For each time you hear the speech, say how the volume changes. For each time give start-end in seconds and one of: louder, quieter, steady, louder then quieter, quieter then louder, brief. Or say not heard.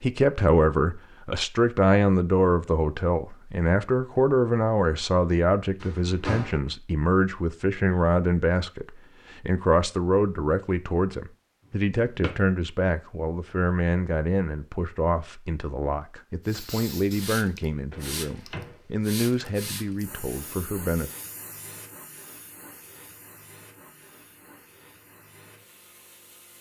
0.0-21.1 quieter.